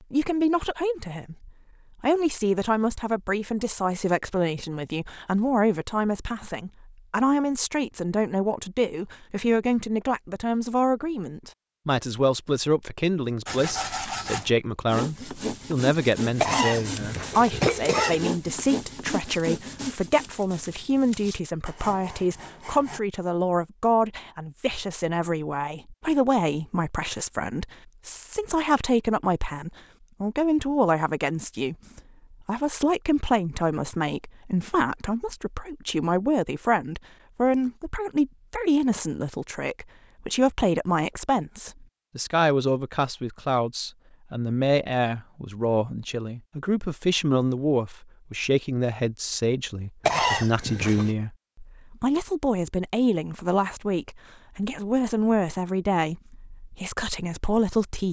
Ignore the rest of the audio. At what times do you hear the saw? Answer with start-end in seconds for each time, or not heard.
13.4-23.0.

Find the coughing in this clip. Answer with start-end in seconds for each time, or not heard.
16.4-18.2, 50.0-51.1.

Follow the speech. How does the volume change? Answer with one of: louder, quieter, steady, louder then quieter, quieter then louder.
steady.